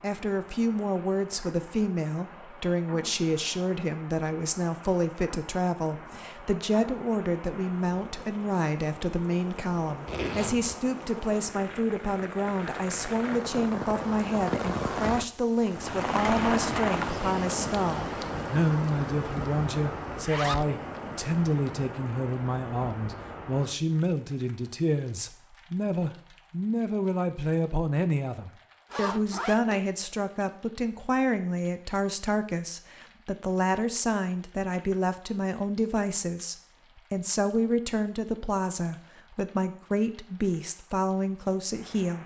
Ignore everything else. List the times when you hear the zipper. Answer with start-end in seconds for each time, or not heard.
10.1-10.8, 20.1-20.6, 28.9-29.9.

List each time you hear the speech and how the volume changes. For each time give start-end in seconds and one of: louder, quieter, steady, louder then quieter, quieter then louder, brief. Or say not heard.
0.0-42.2 steady.